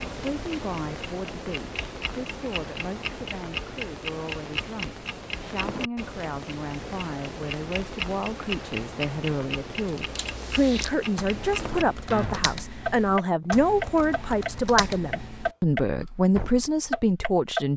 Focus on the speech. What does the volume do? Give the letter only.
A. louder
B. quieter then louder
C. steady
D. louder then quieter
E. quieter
A.